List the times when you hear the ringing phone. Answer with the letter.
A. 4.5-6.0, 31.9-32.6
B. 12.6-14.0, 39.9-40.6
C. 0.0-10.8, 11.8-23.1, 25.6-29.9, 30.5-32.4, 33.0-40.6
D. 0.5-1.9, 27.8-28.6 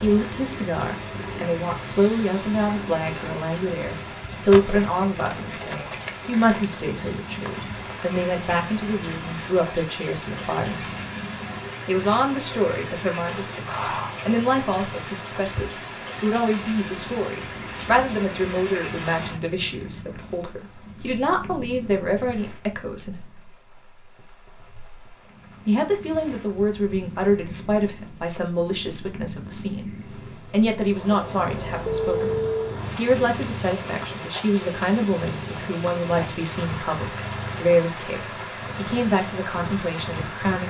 A.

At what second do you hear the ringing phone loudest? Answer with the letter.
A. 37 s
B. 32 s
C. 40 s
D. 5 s
B.